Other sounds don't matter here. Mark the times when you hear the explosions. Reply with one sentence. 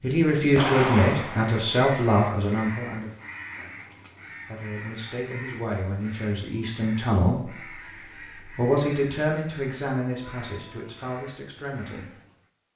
The explosions can be heard from 0.6 to 1.5 s.